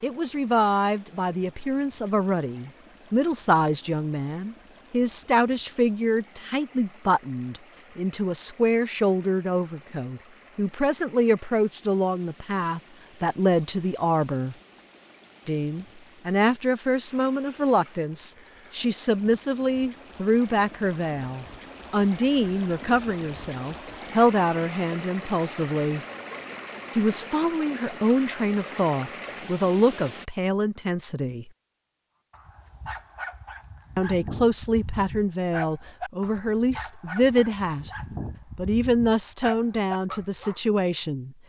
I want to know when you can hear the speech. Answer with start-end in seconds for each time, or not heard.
0.0-14.6, 15.4-26.0, 26.9-31.5, 34.0-37.9, 38.5-41.4.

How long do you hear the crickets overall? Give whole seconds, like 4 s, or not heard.
not heard.